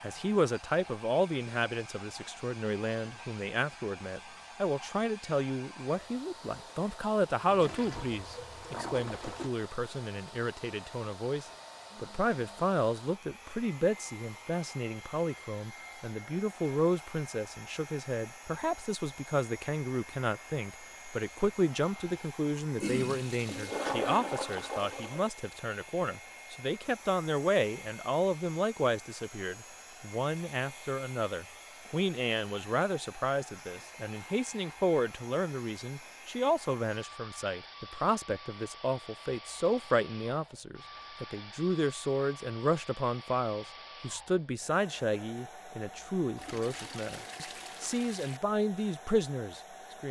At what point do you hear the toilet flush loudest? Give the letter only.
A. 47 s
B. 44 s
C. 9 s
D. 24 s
D.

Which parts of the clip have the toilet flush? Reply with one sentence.
The toilet flush can be heard from 7.5 to 9.5 s, from 22.8 to 25.3 s and from 46.4 to 48.4 s.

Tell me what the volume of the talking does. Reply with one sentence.
The volume of the talking stays about the same.